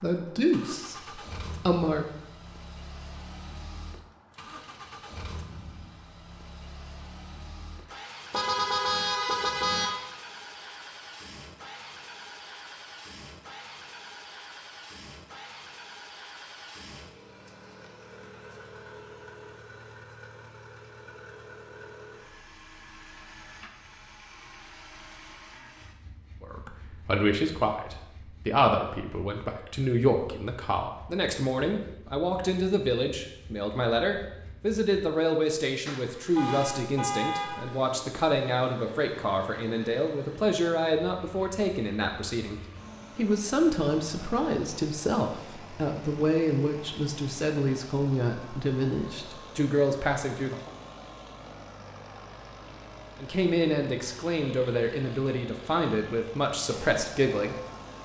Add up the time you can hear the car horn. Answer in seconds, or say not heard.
3 s.